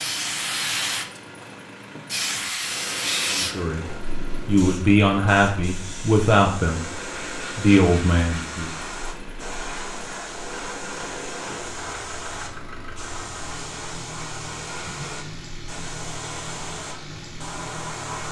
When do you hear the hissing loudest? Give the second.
3 s.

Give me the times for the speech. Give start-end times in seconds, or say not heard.
3.3-8.8.